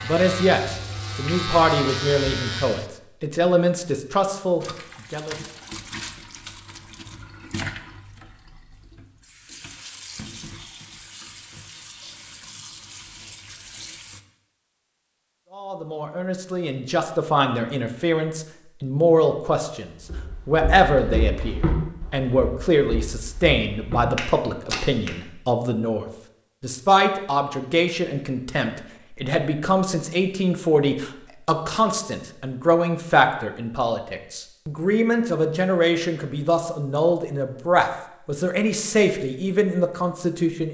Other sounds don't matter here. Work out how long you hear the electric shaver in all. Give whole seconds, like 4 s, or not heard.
3 s.